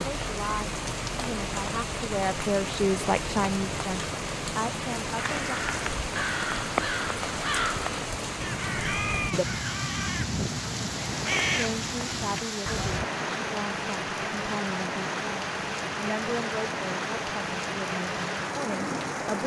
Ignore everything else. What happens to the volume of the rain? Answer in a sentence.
The volume of the rain stays about the same.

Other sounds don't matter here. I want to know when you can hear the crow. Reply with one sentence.
The crow can be heard from 5.2 to 13.1 s.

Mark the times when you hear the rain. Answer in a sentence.
The rain can be heard from 0.0 to 19.4 s.